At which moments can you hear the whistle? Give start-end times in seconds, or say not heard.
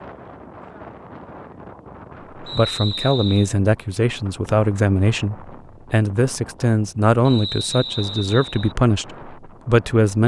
2.5-3.5, 7.2-8.8.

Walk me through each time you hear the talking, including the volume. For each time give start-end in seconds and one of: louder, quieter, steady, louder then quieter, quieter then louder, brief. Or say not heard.
2.4-10.2 steady.